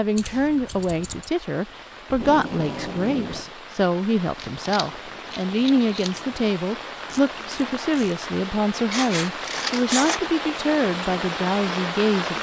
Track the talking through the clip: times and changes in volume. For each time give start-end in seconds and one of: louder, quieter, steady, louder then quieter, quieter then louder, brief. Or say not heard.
0.0-12.3 steady.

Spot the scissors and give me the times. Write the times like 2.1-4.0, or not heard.
0.1-1.3, 4.3-6.5, 8.8-10.2.